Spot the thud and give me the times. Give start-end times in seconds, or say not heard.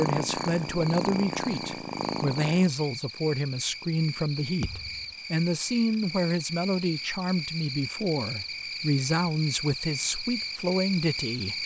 4.6-5.2.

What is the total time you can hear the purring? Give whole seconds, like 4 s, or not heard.
3 s.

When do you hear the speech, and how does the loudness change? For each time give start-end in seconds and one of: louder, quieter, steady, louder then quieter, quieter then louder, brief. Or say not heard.
0.0-11.6 steady.